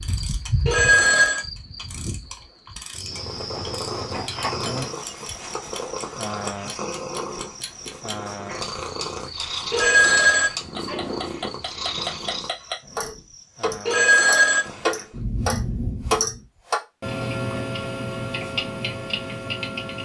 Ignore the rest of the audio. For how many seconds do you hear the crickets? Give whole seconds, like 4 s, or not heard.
14 s.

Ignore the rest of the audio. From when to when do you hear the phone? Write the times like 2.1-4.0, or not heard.
0.7-1.4, 9.7-11.2, 13.8-14.7.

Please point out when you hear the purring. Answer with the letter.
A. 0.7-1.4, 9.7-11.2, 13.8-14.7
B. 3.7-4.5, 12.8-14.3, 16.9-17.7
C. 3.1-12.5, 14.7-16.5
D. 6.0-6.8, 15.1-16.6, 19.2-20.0
C.